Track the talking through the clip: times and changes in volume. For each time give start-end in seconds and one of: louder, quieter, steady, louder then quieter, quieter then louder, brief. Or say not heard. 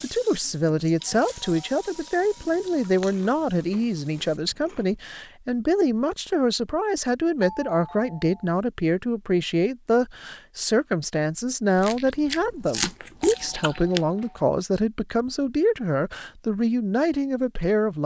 0.0-18.0 steady.